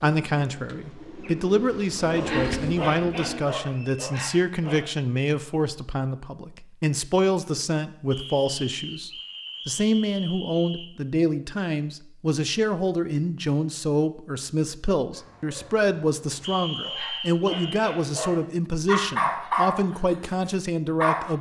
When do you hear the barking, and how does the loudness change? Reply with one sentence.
You can hear the barking briefly from 2.1 to 4.9 s; and from 15.1 to 21.3 s, getting louder then quieter.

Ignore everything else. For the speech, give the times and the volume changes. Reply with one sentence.
The speech can be heard from 0.0 to 21.3 s, at a steady volume.